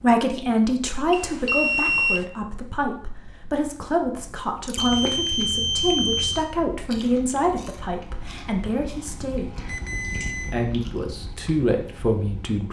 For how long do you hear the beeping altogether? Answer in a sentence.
You can hear the beeping for 4 seconds altogether.